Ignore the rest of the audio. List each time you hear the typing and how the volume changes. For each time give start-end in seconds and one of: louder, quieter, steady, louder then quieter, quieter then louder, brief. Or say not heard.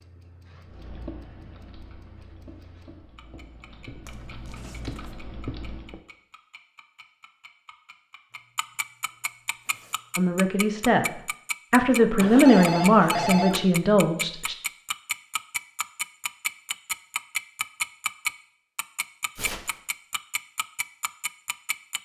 0.7-6.0 quieter then louder.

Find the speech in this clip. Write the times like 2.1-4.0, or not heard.
10.2-14.6.